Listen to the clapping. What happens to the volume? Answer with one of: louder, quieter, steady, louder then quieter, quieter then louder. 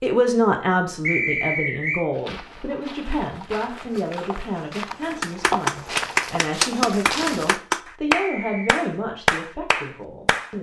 quieter then louder.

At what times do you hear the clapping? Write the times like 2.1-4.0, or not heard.
5.0-10.5.